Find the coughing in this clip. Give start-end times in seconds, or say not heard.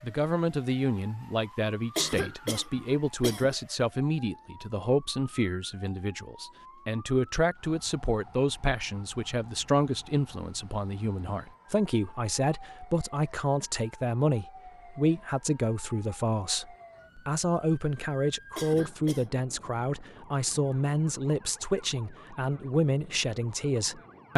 1.9-3.5, 18.6-19.4.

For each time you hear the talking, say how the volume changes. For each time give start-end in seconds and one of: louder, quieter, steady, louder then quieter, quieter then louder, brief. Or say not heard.
0.0-24.3 steady.